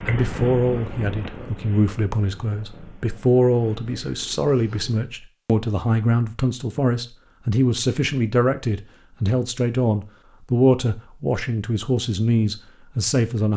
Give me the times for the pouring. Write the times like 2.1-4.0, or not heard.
not heard.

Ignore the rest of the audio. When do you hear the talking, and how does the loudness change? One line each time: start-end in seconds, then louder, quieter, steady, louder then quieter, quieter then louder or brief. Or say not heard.
0.1-13.5 steady.